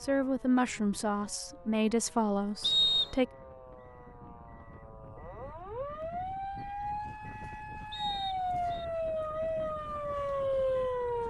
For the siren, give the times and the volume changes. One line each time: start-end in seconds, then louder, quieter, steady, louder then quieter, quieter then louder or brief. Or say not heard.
0.0-11.2 louder.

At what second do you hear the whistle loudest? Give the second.
3 s.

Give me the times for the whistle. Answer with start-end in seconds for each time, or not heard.
2.6-3.1, 7.9-8.8.